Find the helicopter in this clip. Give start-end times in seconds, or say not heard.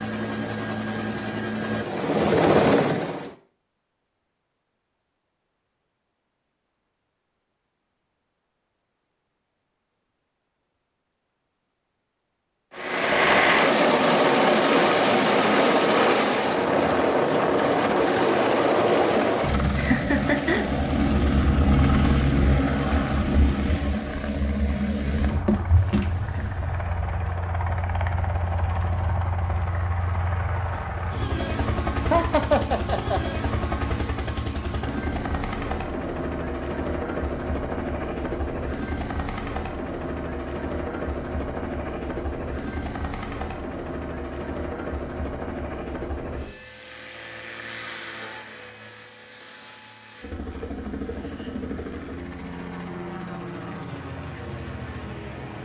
0.0-3.4, 12.8-55.6.